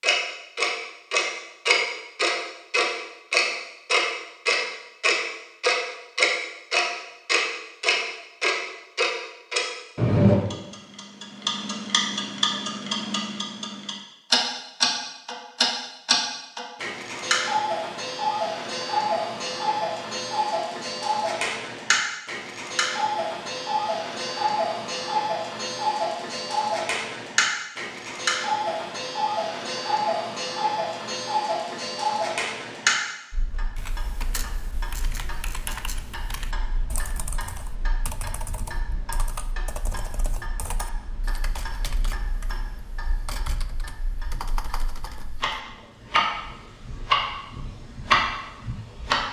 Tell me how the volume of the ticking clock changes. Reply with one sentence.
The loudness of the ticking clock goes down.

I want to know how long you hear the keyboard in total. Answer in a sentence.
You can hear the keyboard for 12 seconds altogether.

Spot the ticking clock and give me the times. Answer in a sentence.
The ticking clock can be heard from 0.0 to 49.2 s.